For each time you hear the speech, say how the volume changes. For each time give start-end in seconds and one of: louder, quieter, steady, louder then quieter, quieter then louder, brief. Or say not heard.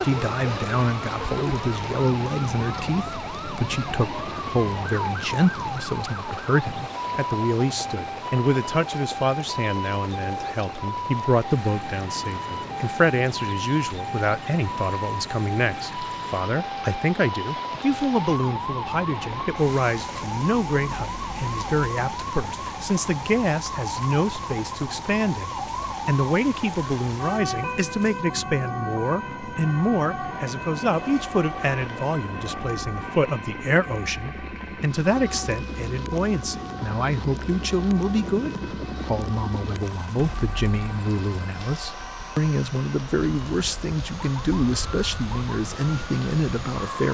0.0-47.1 steady.